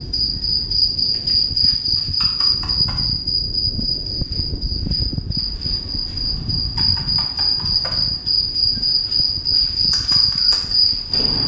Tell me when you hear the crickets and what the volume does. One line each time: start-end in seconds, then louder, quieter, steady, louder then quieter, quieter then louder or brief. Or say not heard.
0.0-11.4 quieter then louder.